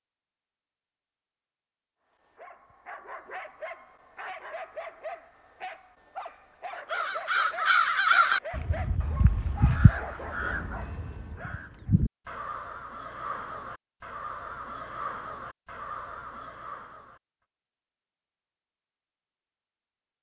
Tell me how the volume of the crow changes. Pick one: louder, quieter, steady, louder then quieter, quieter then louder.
quieter.